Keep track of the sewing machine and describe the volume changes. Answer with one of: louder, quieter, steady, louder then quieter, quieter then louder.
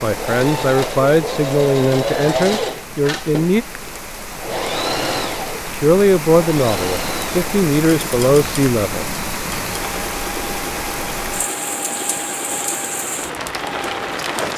quieter.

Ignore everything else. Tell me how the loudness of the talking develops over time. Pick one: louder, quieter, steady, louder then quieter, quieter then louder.
steady.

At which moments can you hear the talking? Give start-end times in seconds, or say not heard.
0.0-3.6, 5.7-9.1.